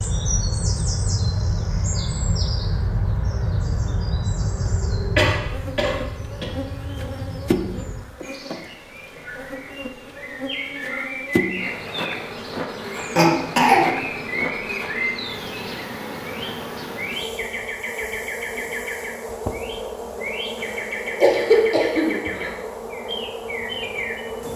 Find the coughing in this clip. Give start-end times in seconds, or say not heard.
5.2-6.5, 13.2-14.4, 21.2-22.5.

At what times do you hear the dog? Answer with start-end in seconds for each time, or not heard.
not heard.